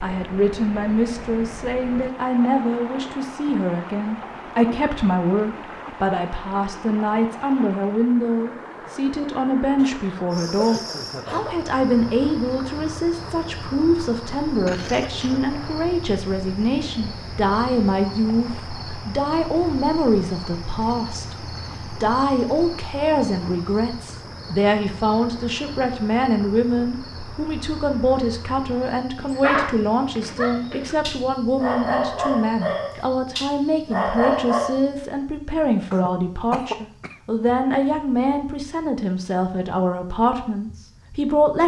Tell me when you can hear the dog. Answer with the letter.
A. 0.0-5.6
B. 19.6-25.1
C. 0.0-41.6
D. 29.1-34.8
D.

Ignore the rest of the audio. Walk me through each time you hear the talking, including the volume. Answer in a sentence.
You can hear the talking from 0.0 to 41.6 s, at a steady volume.